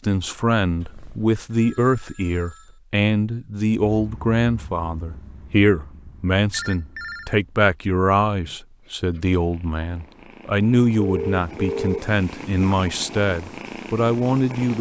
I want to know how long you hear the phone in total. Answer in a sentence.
The phone can be heard for 3 seconds in total.